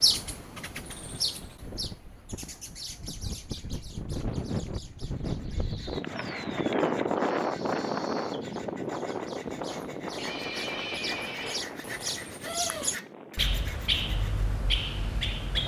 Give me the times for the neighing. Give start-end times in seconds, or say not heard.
10.2-11.7.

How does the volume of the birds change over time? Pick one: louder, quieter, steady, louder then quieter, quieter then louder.
quieter then louder.